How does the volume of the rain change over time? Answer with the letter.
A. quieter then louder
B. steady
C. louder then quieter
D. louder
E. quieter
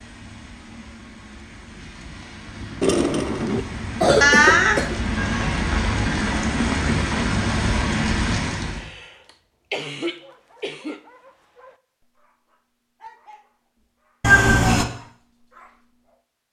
D.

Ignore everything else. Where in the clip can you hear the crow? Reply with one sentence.
The crow can't be heard in this clip.